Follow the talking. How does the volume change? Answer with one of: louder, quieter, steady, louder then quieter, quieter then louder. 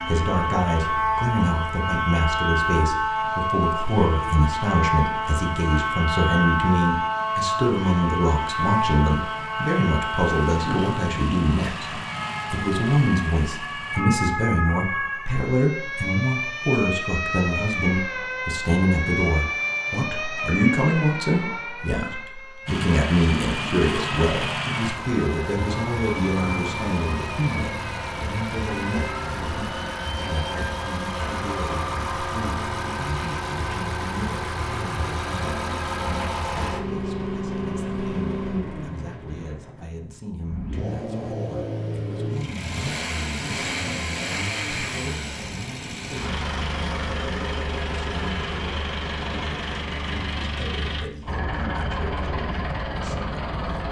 quieter.